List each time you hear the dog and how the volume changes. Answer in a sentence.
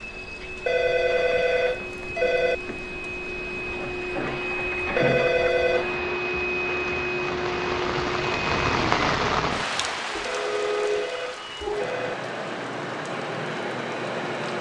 The dog can't be heard in this clip.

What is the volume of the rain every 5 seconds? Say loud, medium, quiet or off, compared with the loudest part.
quiet, loud, medium.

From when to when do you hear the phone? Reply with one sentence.
The phone can be heard from 0.7 to 2.5 s, from 5.0 to 5.8 s and from 10.2 to 12.2 s.